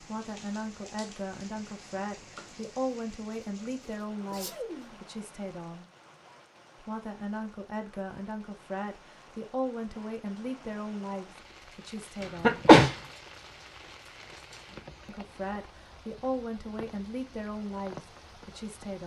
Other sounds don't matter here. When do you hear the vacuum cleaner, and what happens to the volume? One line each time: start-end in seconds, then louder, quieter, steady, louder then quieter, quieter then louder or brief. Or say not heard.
not heard.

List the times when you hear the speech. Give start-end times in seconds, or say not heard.
0.0-5.9, 6.8-12.7, 15.1-19.0.